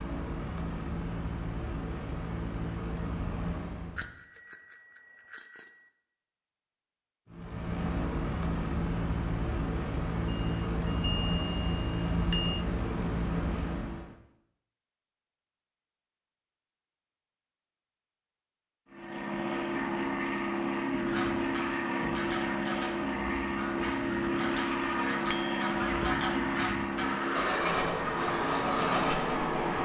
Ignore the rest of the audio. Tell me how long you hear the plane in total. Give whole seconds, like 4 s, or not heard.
22 s.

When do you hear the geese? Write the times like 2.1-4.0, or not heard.
20.9-29.2.